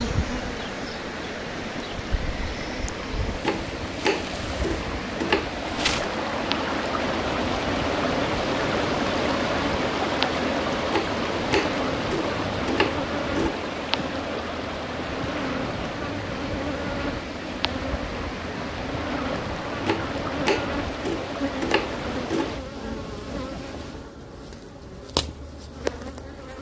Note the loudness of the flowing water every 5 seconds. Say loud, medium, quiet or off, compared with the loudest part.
medium, loud, loud, medium, medium, off.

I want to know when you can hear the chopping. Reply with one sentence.
The chopping can be heard from 3.4 to 5.5 s, from 10.9 to 13.6 s and from 19.9 to 22.6 s.